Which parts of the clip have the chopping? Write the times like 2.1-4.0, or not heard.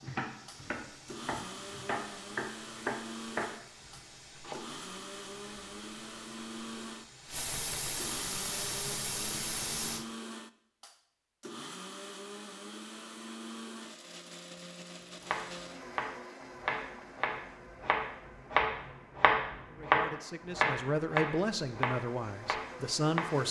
0.0-4.6, 15.2-23.4.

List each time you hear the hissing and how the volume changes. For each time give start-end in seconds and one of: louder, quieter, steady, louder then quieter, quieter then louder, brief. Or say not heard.
0.0-10.1 louder.